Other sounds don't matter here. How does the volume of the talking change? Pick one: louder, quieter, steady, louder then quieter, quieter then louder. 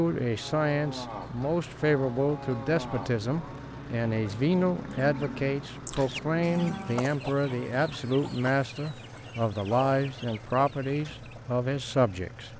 steady.